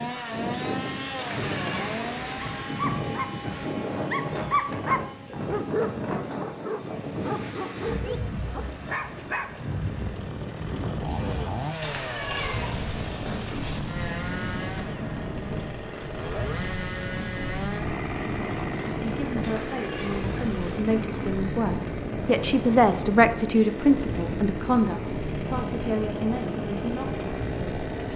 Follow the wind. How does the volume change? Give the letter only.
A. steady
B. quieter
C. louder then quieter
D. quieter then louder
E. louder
A.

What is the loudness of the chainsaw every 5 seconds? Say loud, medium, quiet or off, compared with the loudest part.
loud, quiet, loud, loud, loud, loud.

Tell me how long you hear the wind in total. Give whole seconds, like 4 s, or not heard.
28 s.